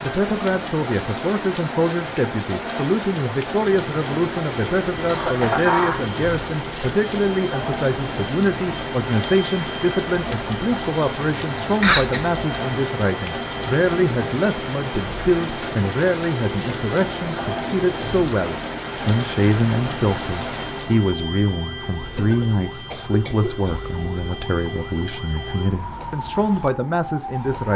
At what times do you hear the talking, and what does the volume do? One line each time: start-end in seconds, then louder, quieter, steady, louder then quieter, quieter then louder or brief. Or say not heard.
0.0-27.7 steady.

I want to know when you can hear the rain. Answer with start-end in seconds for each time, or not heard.
0.0-21.1.